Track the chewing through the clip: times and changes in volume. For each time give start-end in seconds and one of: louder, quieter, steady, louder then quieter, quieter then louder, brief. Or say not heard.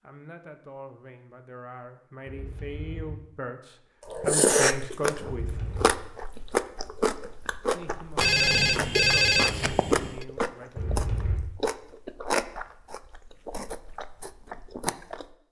4.0-15.3 quieter.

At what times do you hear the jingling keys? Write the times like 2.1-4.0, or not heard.
2.2-3.2, 5.2-5.9, 10.8-11.4.